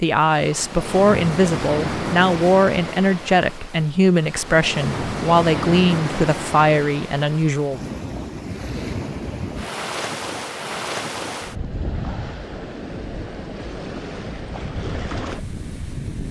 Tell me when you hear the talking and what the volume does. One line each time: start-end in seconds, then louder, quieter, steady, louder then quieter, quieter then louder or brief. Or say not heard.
0.0-7.8 steady.